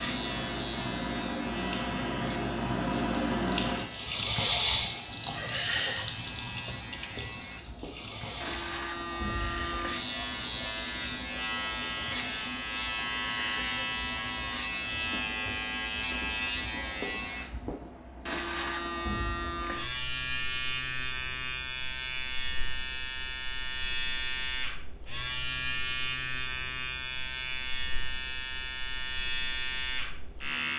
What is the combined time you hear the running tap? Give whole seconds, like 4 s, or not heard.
15 s.